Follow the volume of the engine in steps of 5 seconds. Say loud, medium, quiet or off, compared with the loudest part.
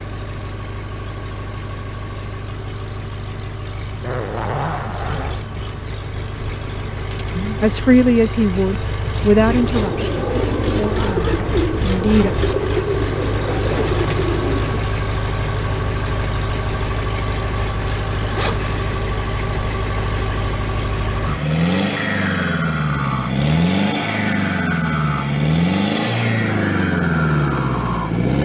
quiet, medium, medium, medium, loud, loud.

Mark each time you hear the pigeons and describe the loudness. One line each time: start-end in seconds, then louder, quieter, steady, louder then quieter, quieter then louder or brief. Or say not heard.
9.4-14.8 steady.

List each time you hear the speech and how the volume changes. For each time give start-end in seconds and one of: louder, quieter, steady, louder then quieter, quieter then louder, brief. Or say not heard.
7.3-12.3 quieter.